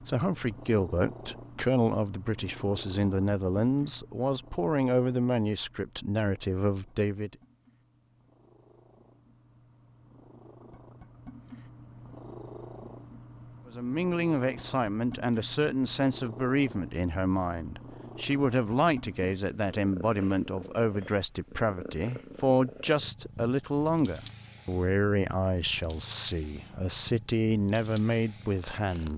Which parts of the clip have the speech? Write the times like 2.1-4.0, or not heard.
0.1-7.3, 13.7-29.1.